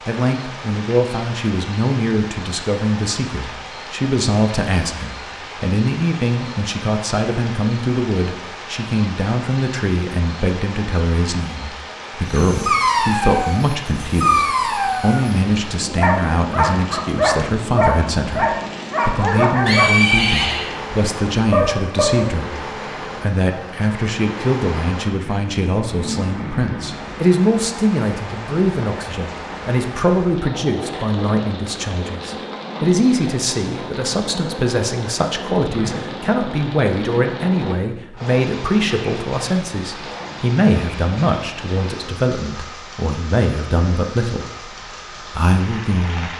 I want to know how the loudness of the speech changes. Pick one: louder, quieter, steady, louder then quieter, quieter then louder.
steady.